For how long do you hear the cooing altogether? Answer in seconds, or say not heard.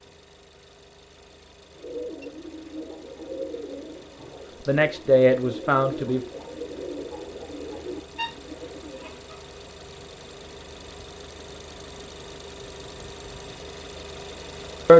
8 s.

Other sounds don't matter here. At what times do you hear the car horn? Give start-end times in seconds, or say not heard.
not heard.